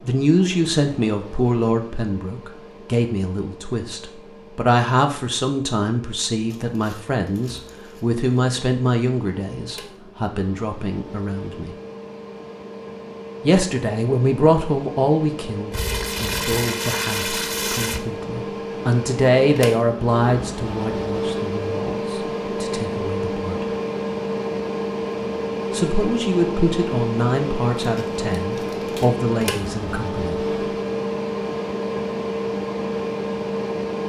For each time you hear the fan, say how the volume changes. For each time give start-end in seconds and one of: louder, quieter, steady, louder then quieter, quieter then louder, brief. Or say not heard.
0.0-34.0 louder.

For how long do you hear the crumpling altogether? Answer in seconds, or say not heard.
5 s.